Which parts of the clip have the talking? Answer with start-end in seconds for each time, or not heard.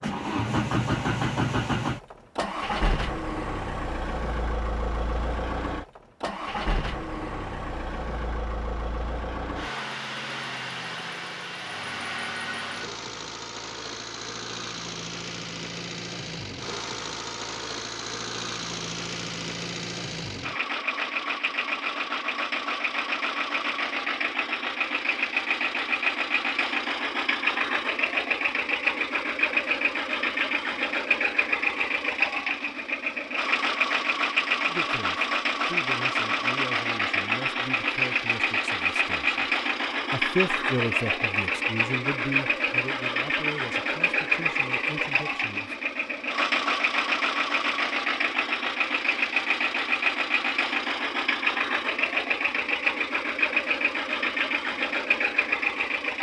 34.6-39.5, 40.1-45.8.